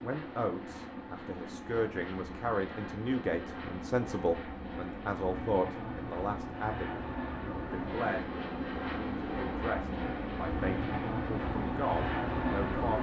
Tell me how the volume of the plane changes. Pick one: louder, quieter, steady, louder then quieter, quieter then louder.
louder.